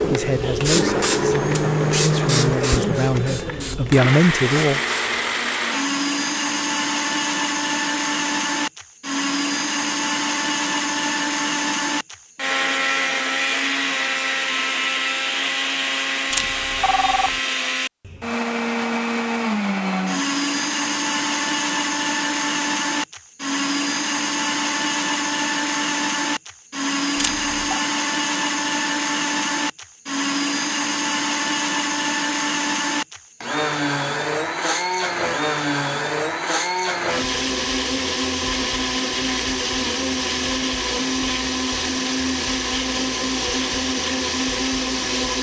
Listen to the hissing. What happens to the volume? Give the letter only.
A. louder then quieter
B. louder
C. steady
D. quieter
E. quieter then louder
D.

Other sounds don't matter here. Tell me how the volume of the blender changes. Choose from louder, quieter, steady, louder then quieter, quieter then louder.
steady.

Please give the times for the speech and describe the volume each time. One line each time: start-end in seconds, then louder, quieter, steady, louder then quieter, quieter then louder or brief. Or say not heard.
0.0-4.8 quieter then louder.